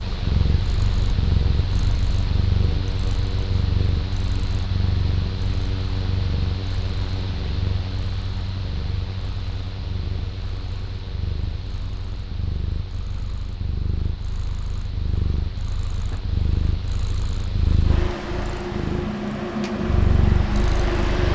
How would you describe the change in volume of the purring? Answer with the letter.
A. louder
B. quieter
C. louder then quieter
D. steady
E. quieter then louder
E.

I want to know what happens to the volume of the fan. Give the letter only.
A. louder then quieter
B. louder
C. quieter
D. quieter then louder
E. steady
D.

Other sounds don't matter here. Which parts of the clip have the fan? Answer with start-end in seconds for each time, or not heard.
0.0-21.2.